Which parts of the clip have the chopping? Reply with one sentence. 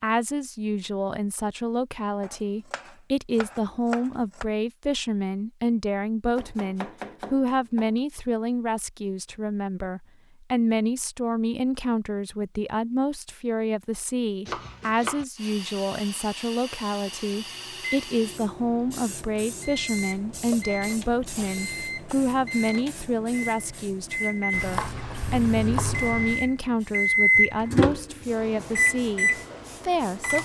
The chopping can be heard from 2.2 to 4.5 s, from 6.3 to 8.0 s, from 14.4 to 15.2 s, from 20.3 to 22.1 s and from 24.5 to 26.4 s.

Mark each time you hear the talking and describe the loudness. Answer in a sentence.
The talking can be heard from 0.0 to 30.4 s, at a steady volume.